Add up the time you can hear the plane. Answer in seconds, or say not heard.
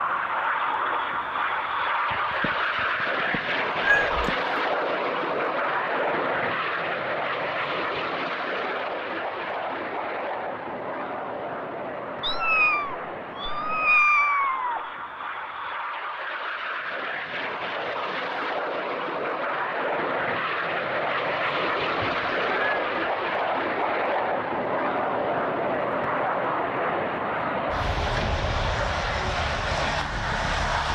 31 s.